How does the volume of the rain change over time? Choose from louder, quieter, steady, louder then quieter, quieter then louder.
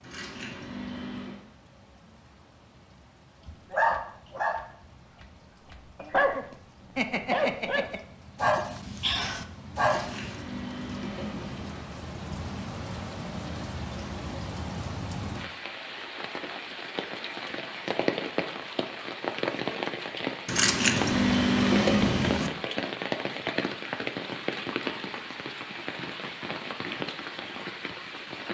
louder.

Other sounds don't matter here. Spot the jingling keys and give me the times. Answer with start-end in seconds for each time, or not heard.
0.0-1.4, 9.8-11.8, 20.4-22.5.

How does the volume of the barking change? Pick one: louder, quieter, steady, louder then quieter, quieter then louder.
steady.